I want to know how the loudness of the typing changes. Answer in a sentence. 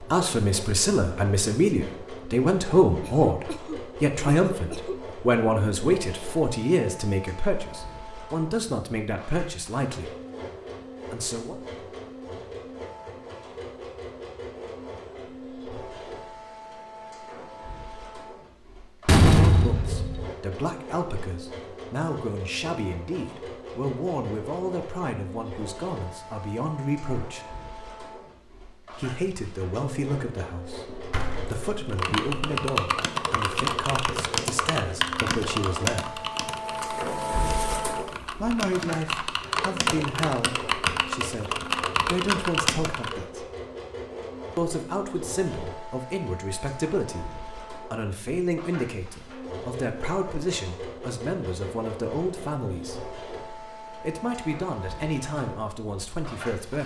The volume of the typing goes down, then up.